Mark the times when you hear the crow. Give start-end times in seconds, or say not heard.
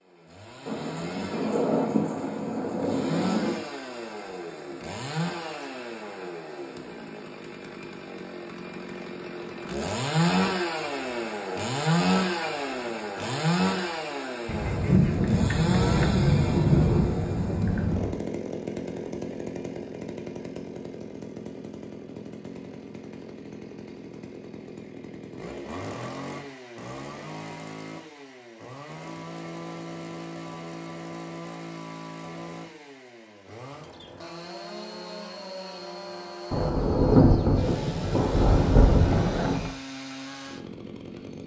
not heard.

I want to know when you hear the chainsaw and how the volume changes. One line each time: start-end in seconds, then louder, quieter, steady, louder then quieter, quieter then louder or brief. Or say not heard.
0.0-41.4 louder then quieter.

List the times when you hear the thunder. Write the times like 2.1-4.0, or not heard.
0.7-3.6, 14.4-18.1, 36.5-39.7.